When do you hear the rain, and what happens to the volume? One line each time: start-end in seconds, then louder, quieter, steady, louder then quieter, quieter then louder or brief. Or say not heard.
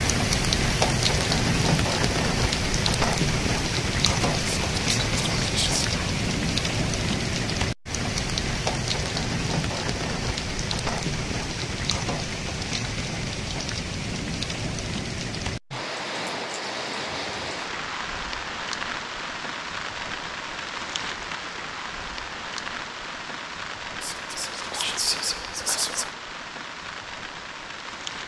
0.0-28.2 quieter.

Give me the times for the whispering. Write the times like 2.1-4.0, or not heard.
4.3-6.2, 24.0-26.1.